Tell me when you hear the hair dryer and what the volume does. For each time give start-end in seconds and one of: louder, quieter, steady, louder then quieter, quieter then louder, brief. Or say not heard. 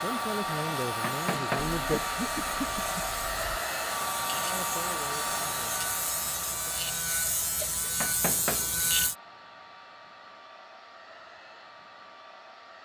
0.0-12.7 quieter.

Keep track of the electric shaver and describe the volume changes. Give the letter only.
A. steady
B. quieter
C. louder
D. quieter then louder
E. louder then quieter
C.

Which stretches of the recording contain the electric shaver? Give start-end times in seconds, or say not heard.
0.0-9.2.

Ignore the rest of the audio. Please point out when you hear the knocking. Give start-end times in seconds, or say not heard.
1.0-1.8, 8.0-8.8.